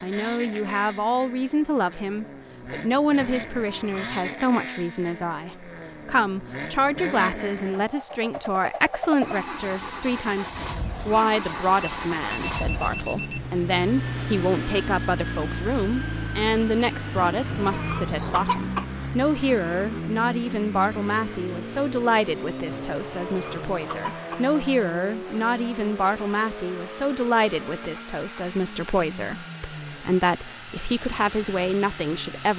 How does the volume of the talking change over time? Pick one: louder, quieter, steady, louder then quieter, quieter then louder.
steady.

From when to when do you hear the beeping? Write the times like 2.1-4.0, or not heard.
11.8-13.4.